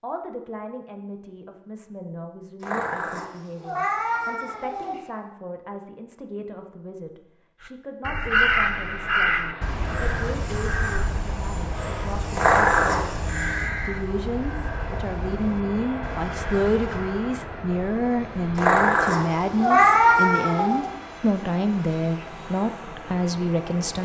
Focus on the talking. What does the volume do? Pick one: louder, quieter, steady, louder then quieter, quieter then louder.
louder.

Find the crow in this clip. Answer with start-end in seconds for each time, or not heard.
7.6-17.2.